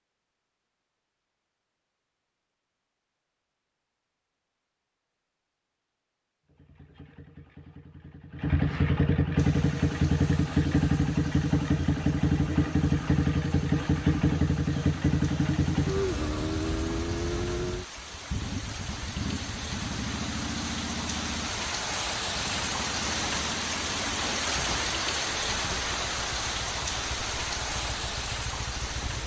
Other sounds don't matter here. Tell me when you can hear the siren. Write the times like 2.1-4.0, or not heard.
not heard.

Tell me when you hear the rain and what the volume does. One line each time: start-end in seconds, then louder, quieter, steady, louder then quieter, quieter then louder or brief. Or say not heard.
9.3-29.2 louder.